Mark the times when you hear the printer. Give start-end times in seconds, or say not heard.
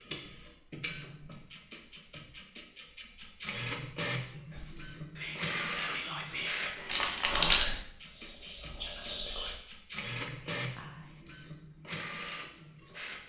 0.0-13.2.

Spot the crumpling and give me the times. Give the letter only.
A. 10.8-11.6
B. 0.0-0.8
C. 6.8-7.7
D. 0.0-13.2
C.